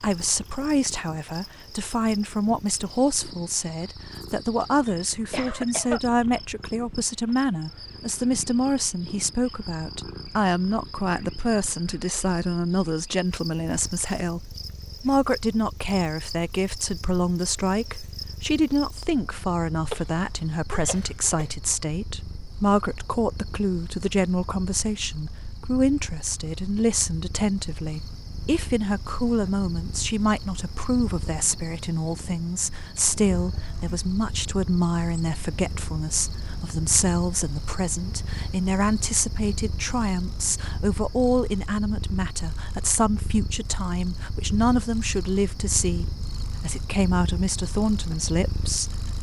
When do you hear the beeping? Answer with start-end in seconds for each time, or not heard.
not heard.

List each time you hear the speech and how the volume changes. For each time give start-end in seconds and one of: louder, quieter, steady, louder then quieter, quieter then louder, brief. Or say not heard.
0.0-49.1 steady.